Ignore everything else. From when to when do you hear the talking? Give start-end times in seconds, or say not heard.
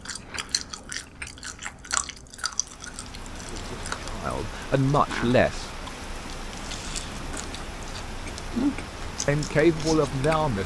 3.4-5.7, 9.2-10.6.